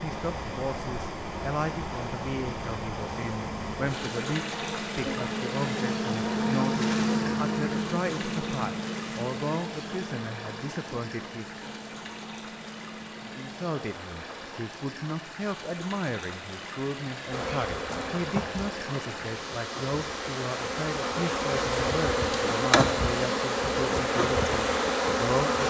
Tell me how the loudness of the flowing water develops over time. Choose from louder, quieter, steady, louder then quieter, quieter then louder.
quieter then louder.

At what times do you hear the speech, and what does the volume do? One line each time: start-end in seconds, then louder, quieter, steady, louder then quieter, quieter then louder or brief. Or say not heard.
0.0-11.8 steady
13.2-25.6 steady.